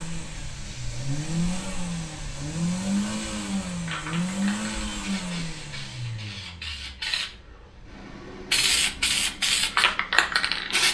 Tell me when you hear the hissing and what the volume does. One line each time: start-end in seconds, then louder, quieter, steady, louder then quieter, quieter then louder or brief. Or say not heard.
0.1-10.8 louder.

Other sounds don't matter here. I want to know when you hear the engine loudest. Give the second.
3 s.